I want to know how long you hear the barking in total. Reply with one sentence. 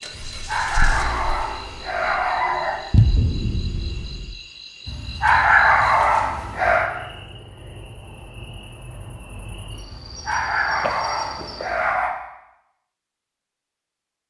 The barking can be heard for 7 seconds in total.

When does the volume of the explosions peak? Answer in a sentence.
The volume of the explosions peaks at 3 seconds.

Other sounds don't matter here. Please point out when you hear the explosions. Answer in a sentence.
You can hear the explosions from 2.9 to 4.3 s.